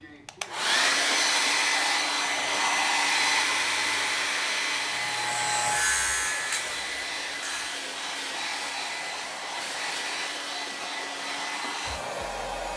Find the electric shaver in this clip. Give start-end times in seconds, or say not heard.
4.8-7.8.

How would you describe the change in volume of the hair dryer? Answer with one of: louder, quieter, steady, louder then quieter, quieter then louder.
quieter.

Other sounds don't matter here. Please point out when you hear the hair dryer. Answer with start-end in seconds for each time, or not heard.
0.0-12.7.